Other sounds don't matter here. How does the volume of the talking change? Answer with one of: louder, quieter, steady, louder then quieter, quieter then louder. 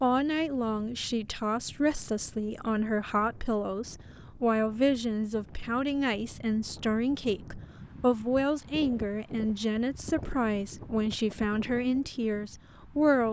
steady.